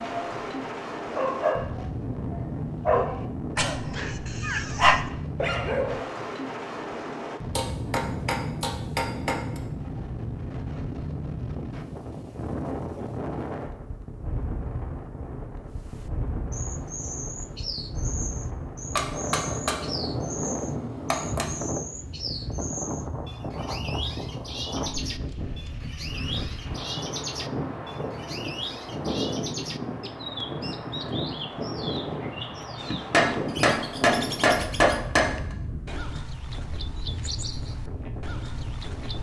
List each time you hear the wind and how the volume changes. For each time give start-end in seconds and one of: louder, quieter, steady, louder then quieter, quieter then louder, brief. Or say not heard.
0.0-39.1 steady.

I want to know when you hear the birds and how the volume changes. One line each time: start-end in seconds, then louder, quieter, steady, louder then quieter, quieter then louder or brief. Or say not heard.
15.7-39.1 steady.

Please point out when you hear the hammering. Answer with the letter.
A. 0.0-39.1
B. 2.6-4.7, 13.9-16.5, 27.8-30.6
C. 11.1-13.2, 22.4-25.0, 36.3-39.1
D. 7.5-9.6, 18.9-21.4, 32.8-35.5
D.